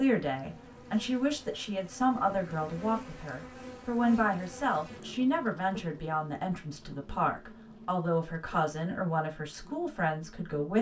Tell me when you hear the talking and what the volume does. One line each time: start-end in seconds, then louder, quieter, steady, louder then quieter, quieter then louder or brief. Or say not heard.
0.0-10.7 steady.